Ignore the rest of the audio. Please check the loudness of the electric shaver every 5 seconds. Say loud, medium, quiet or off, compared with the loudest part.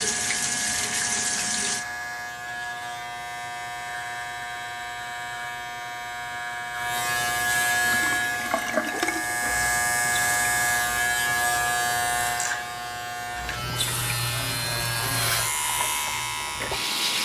medium, loud, loud, loud.